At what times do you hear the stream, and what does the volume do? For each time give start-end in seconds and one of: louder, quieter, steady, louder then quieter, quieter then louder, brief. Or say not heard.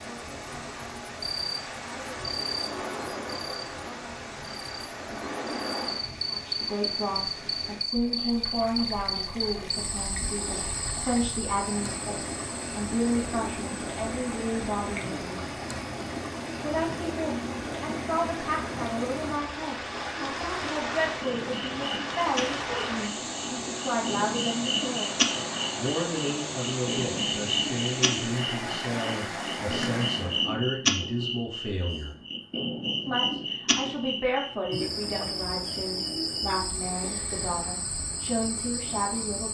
0.0-30.5 louder.